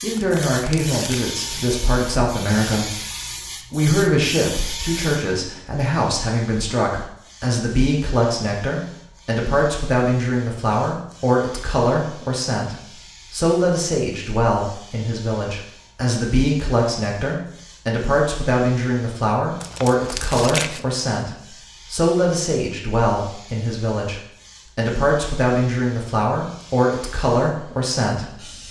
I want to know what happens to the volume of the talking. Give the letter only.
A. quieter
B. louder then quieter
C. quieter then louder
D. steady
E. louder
D.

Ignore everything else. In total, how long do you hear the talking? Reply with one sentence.
You can hear the talking for 28 seconds altogether.